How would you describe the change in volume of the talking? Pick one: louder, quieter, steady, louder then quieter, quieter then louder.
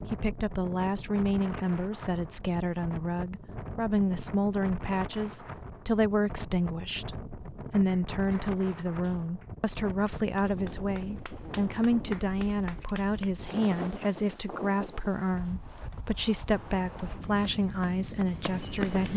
steady.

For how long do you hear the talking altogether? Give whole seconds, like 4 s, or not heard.
19 s.